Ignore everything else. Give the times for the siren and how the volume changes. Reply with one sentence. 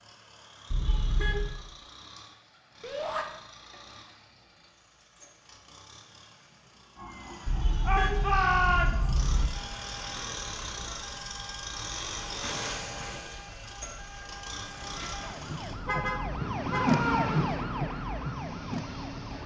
The siren can be heard from 7.0 to 19.4 s, getting louder.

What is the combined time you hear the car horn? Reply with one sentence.
The car horn can be heard for 4 seconds in total.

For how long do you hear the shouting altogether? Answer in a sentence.
You can hear the shouting for 3 seconds altogether.